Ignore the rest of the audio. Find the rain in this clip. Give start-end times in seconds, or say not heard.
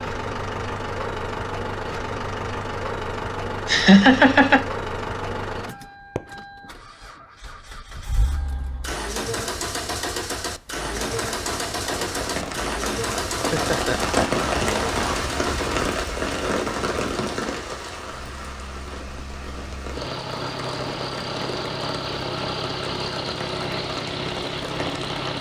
10.8-25.3.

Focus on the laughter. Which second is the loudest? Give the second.
4 s.